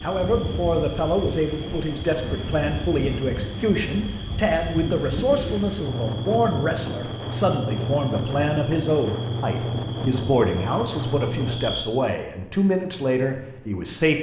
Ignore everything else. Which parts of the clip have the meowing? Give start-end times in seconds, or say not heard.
not heard.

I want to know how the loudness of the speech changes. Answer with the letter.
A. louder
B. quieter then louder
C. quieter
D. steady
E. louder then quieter
D.